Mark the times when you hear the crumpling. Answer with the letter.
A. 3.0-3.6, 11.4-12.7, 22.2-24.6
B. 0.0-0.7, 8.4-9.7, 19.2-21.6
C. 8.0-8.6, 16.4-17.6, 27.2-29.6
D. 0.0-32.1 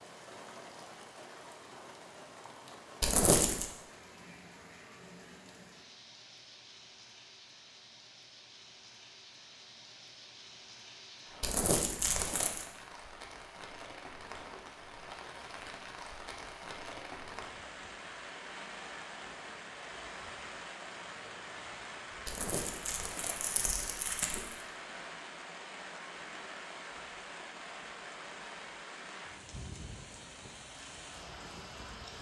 A.